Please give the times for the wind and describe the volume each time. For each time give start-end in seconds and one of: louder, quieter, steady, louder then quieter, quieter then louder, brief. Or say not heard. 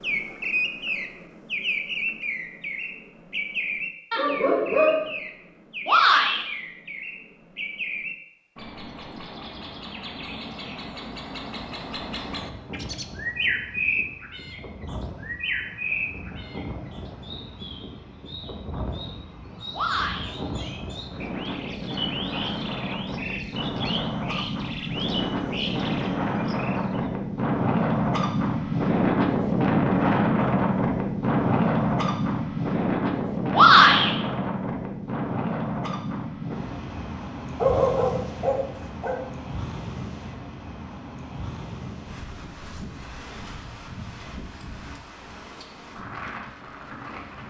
12.3-47.4 louder then quieter.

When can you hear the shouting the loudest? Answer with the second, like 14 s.
34 s.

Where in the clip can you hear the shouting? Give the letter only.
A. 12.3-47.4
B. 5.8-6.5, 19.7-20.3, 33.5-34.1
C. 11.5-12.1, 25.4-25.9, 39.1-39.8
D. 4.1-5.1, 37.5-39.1
B.